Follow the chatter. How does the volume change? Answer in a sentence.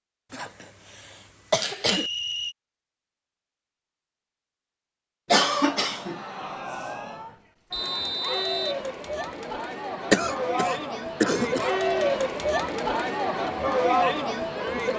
The volume of the chatter goes up.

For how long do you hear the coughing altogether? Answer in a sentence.
You can hear the coughing for 4 seconds altogether.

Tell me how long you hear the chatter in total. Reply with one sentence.
You can hear the chatter for 9 seconds altogether.